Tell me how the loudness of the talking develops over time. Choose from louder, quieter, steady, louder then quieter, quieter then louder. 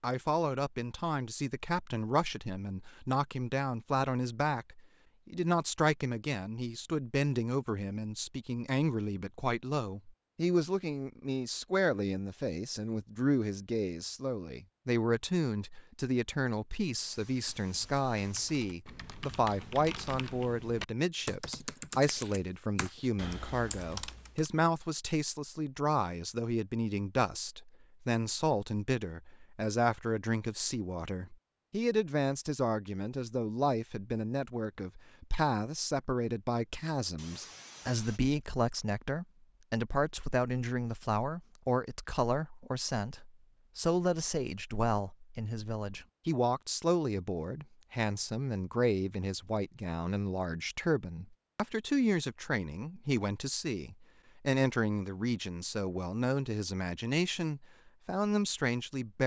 steady.